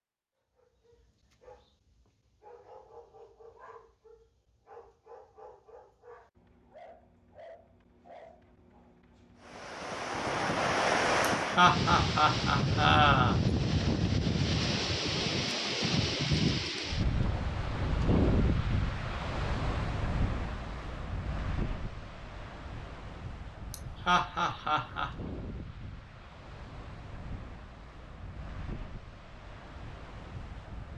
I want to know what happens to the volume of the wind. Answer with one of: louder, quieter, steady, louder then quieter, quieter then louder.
quieter.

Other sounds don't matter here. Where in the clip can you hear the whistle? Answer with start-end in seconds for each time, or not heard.
not heard.